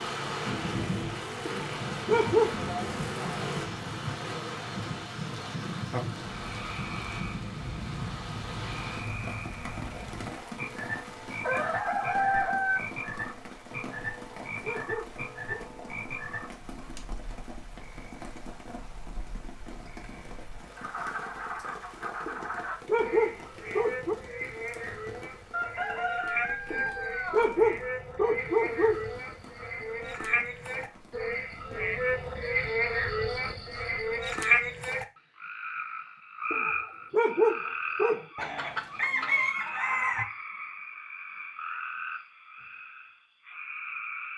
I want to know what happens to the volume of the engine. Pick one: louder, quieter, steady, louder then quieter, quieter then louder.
steady.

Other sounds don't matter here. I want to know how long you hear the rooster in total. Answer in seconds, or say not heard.
5 s.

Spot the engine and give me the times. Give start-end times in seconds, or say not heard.
0.0-4.7.